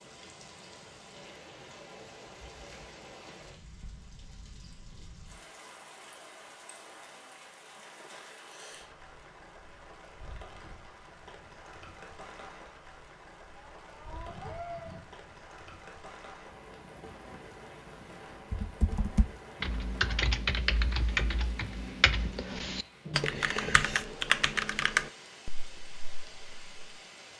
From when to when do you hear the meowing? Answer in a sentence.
The meowing can be heard from 13.7 to 15.0 s.